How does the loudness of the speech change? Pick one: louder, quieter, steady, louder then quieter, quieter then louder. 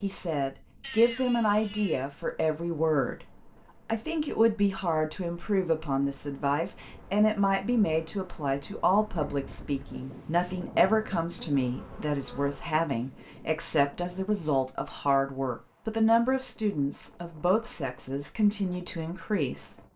steady.